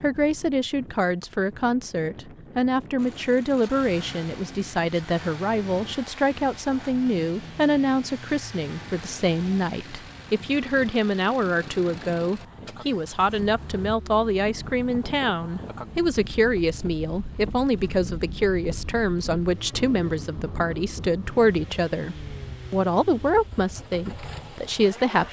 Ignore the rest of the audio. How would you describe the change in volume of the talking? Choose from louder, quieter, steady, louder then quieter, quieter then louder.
steady.